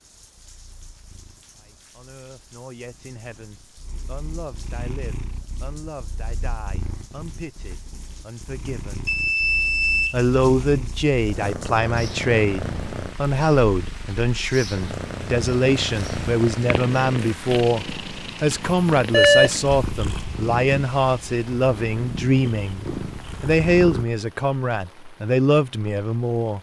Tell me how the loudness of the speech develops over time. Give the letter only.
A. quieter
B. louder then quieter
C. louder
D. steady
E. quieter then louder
C.